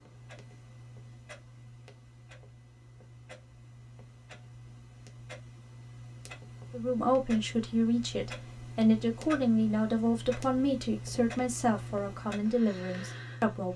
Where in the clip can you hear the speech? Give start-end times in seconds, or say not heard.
6.7-13.7.